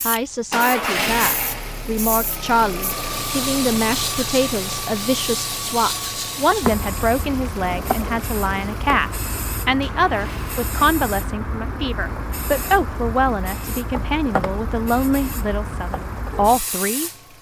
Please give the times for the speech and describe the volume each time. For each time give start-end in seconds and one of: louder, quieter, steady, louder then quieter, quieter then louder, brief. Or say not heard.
0.1-17.1 steady.